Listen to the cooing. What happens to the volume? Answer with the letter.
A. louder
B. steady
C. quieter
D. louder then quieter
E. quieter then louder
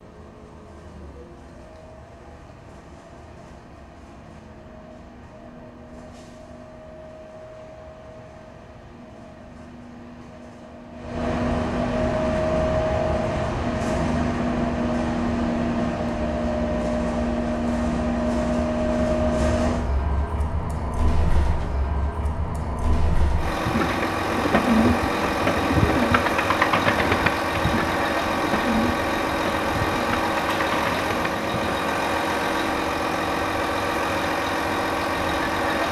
C.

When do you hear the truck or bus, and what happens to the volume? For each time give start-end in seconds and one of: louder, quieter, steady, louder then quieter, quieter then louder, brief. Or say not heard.
0.0-35.8 louder.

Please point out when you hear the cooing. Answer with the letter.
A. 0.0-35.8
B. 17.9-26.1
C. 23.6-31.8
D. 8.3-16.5
C.